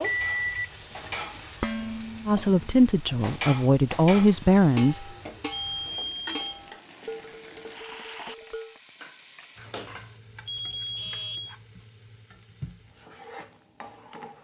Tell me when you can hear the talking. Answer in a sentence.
The talking can be heard from 2.2 to 5.0 s.